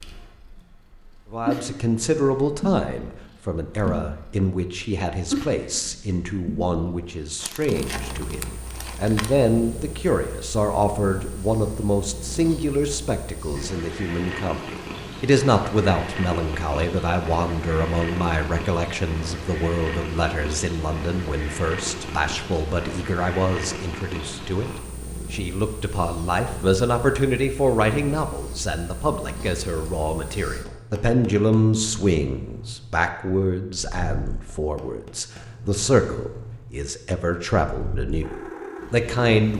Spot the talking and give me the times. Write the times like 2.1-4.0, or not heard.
1.3-39.5.